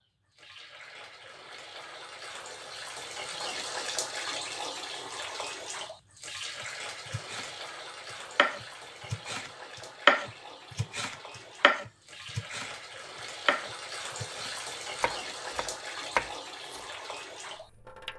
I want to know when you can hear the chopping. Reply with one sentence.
The chopping can be heard from 6.5 to 7.5 s, from 8.3 to 12.8 s and from 13.4 to 16.9 s.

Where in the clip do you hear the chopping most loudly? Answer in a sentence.
The loudest moment of the chopping is at 10 seconds.